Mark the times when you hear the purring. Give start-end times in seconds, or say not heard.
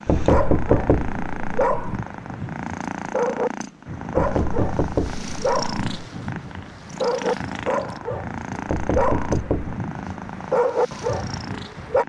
0.0-12.0.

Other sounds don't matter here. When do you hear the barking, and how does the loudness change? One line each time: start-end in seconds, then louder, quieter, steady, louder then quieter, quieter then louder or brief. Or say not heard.
0.1-12.0 steady.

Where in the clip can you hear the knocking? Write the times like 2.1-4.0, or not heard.
0.1-2.0, 4.1-6.0, 8.7-9.8.